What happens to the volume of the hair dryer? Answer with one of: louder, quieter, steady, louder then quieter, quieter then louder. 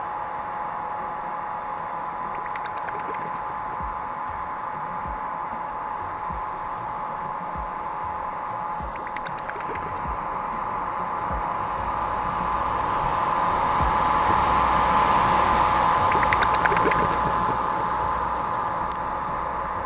louder.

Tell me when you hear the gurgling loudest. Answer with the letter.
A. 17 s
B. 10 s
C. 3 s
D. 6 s
A.